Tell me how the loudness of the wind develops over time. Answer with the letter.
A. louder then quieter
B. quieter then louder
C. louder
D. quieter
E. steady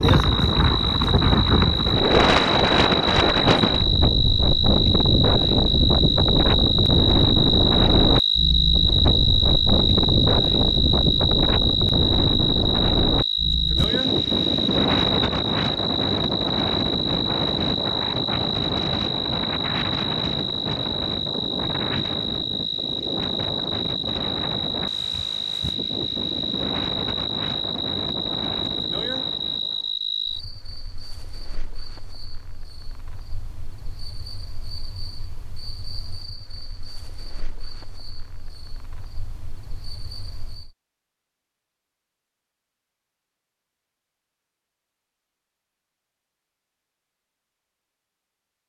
D.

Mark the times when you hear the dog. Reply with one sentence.
The dog can't be heard in this clip.